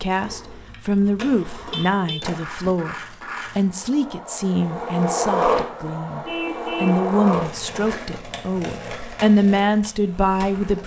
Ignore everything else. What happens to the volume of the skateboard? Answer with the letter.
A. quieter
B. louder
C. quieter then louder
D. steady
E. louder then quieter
E.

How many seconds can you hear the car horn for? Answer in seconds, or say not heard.
2 s.